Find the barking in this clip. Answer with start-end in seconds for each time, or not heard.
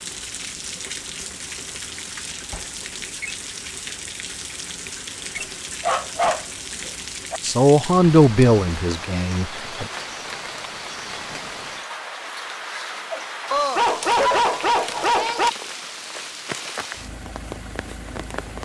5.8-7.4, 13.5-15.5.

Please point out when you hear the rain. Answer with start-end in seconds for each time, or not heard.
0.0-18.6.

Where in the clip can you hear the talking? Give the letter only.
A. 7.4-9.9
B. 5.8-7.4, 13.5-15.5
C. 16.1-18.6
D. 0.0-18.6
A.